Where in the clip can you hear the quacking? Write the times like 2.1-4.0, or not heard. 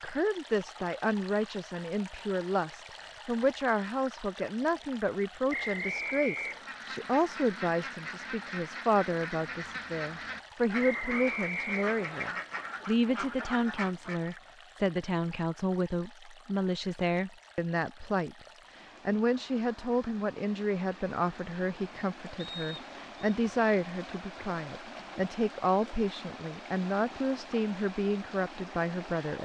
6.3-14.4.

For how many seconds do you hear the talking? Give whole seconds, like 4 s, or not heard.
29 s.